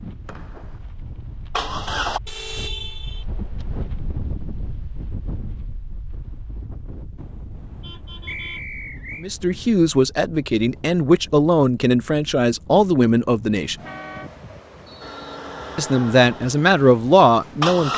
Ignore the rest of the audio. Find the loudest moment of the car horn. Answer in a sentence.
The loudest moment of the car horn is at 3 seconds.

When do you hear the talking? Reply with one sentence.
You can hear the talking from 9.2 to 13.8 s and from 15.8 to 17.9 s.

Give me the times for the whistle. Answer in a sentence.
The whistle can be heard from 0.2 to 0.8 s, from 8.2 to 9.2 s and from 14.8 to 15.2 s.